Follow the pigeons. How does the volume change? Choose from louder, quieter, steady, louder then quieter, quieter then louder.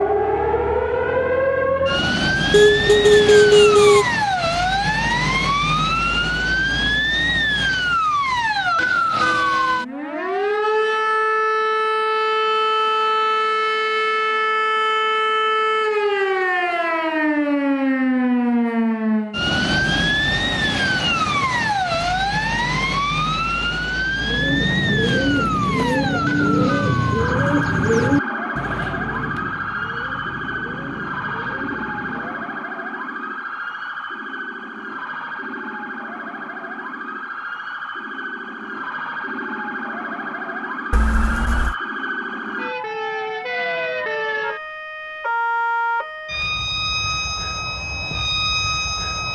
quieter.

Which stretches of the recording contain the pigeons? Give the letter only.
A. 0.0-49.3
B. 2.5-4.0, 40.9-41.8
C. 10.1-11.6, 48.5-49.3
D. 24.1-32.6
D.